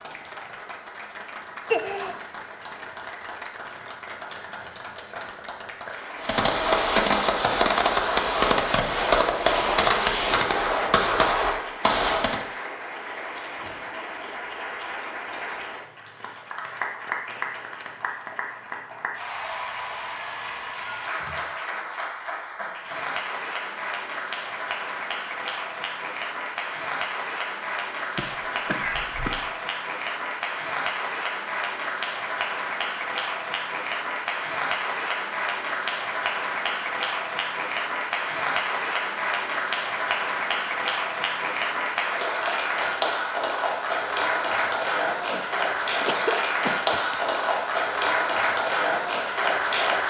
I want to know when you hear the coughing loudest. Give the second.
2 s.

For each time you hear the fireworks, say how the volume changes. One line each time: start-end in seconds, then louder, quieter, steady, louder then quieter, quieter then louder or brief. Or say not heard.
6.2-12.4 steady.